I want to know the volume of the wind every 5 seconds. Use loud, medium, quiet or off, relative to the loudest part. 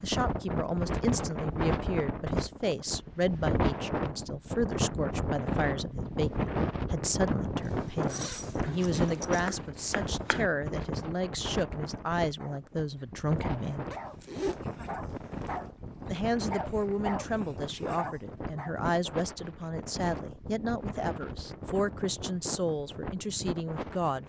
loud, loud, medium, medium, medium.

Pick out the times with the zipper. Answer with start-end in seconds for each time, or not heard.
7.7-9.4, 13.9-15.7.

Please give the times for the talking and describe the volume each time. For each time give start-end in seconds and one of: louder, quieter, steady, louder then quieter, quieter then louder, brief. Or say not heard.
0.0-13.8 steady
16.1-24.2 steady.